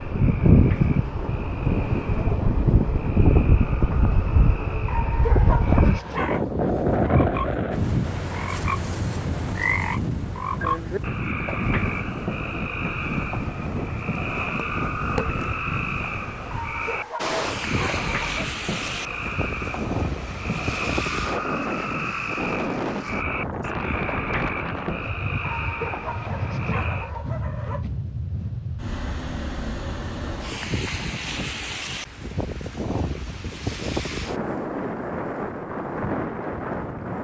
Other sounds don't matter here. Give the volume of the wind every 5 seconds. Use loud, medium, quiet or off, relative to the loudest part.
loud, loud, medium, medium, medium, medium, medium, medium.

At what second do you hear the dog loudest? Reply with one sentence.
The volume of the dog peaks at 5 seconds.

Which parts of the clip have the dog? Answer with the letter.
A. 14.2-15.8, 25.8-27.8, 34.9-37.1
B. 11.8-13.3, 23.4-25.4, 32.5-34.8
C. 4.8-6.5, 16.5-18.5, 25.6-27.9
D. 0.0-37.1
C.